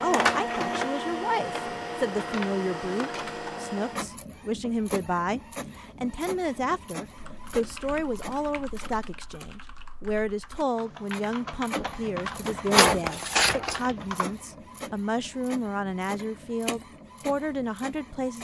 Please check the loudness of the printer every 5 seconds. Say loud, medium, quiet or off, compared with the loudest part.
loud, quiet, loud, quiet.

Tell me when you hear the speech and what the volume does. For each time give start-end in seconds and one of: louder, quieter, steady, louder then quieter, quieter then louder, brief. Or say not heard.
0.0-18.4 steady.